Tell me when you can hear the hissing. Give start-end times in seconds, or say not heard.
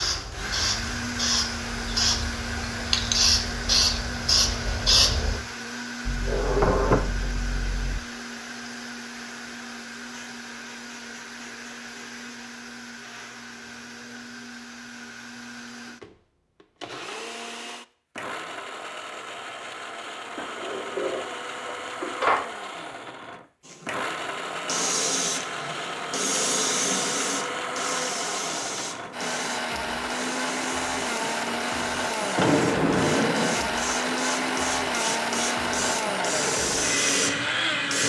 0.0-5.4, 23.6-38.0.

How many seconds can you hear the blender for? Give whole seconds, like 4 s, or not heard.
38 s.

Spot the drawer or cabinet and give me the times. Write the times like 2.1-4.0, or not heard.
6.0-8.0, 20.4-22.5, 32.4-33.6.